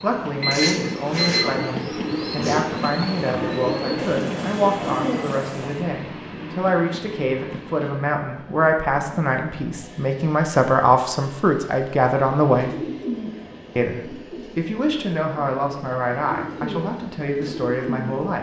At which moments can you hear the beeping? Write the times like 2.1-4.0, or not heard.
0.4-1.6.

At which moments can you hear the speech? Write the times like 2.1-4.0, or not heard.
0.0-12.8, 13.8-18.3.